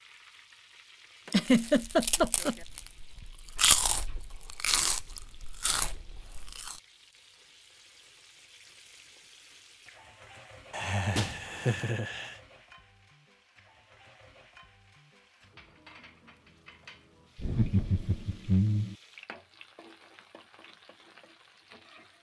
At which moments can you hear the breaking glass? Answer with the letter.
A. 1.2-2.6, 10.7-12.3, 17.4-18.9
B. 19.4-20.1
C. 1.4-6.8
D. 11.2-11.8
D.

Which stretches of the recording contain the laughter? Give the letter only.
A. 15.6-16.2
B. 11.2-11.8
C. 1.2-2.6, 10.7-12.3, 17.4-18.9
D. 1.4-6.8
C.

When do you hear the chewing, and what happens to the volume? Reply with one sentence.
The chewing can be heard from 1.4 to 6.8 s, getting louder then quieter.